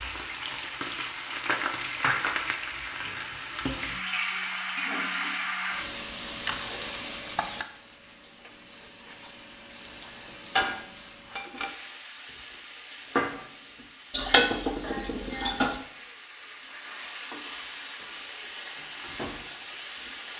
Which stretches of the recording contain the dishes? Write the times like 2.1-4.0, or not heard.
14.1-15.8.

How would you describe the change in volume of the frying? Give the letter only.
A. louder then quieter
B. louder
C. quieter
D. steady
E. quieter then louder
C.